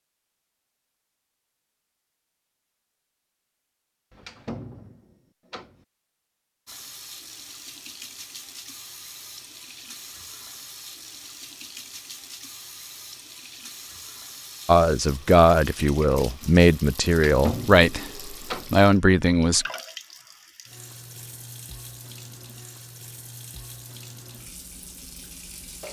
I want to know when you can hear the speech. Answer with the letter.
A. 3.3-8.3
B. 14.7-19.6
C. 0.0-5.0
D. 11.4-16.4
B.